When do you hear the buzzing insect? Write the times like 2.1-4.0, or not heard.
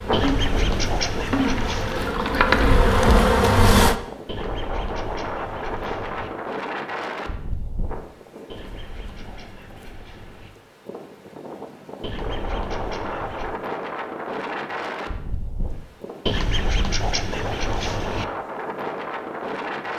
0.0-4.0.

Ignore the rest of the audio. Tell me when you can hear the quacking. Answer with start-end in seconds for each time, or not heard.
0.1-2.1, 4.2-6.3, 8.5-10.5, 12.0-13.6, 16.2-18.2.